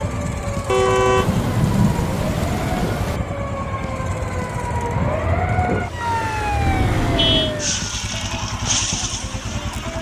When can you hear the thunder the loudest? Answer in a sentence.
The loudest moment of the thunder is at 2 seconds.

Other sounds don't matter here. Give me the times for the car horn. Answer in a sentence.
The car horn can be heard from 0.7 to 1.4 s and from 6.7 to 7.5 s.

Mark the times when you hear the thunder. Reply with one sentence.
The thunder can be heard from 1.1 to 3.2 s.